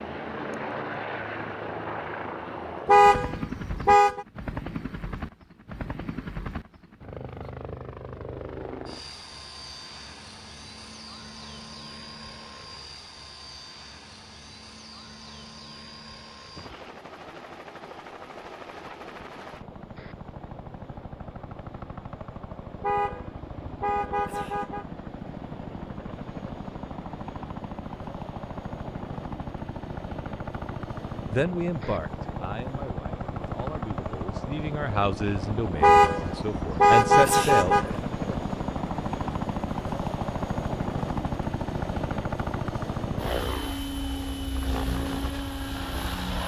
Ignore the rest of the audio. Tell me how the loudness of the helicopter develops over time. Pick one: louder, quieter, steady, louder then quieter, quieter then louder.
quieter then louder.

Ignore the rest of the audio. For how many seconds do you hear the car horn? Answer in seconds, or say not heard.
6 s.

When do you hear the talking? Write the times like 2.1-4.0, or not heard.
31.3-37.9.